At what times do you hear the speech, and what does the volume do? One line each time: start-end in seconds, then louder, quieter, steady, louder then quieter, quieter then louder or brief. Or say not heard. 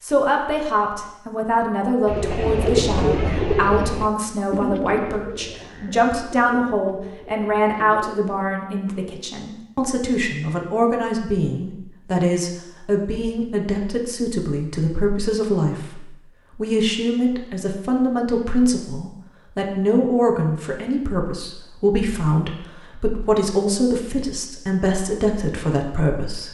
0.0-26.4 steady.